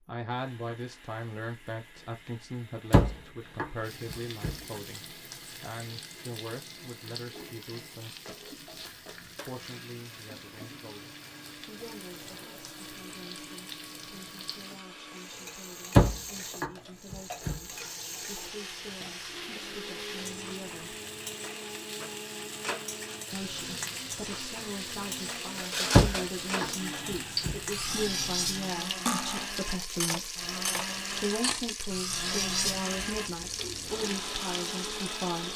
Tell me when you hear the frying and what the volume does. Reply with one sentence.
You can hear the frying from 3.8 to 35.5 s, getting louder.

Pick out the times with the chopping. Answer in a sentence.
You can hear the chopping from 2.9 to 4.5 s, from 15.9 to 17.6 s and from 25.9 to 27.6 s.